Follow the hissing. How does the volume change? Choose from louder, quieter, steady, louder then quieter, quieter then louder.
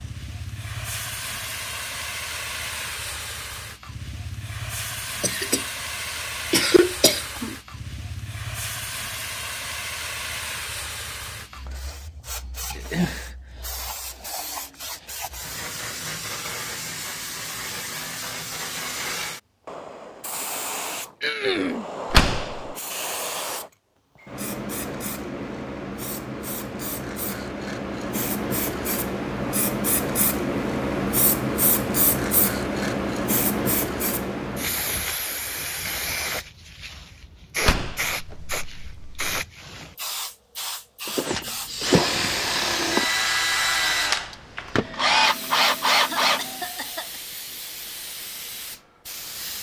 louder then quieter.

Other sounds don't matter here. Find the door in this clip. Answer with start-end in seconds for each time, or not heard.
22.1-22.8, 37.6-39.4.